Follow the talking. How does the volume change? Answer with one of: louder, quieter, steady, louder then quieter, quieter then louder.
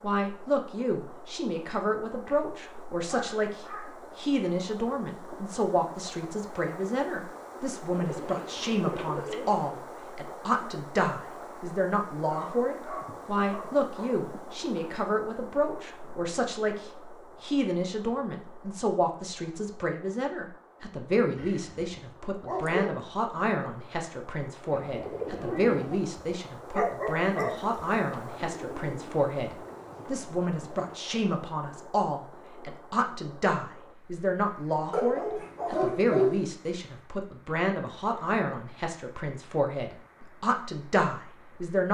steady.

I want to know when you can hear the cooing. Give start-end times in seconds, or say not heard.
7.9-9.8, 24.7-25.9, 28.2-31.0.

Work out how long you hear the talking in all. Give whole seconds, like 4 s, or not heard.
42 s.